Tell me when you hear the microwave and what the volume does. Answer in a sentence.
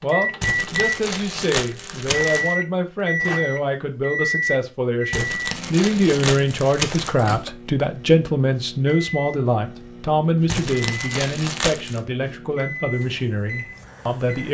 You can hear the microwave from 0.0 to 14.4 s, getting quieter.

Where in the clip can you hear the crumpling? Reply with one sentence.
You can hear the crumpling from 0.4 to 2.5 s, from 5.1 to 7.2 s and from 10.4 to 12.0 s.